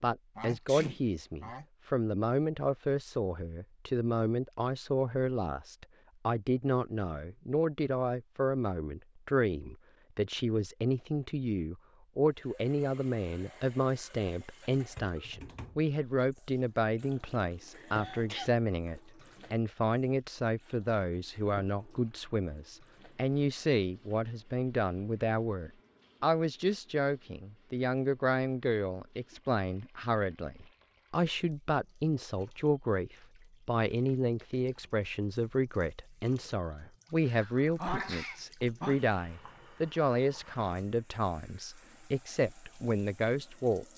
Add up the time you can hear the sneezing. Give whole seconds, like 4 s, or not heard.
4 s.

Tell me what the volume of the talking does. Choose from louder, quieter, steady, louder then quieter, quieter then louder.
steady.